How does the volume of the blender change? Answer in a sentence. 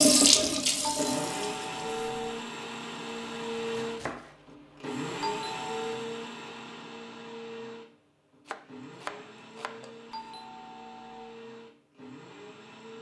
The loudness of the blender goes down.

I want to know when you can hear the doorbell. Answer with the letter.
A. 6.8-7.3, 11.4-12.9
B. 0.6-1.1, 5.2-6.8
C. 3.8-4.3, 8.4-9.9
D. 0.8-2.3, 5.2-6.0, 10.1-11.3
D.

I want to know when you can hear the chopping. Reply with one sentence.
You can hear the chopping from 3.8 to 4.3 s and from 8.4 to 9.9 s.